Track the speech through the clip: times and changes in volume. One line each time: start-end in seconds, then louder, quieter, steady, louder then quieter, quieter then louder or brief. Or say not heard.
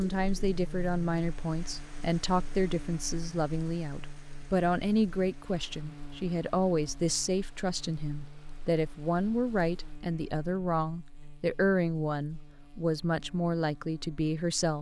0.0-14.7 steady.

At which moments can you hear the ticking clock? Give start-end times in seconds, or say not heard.
not heard.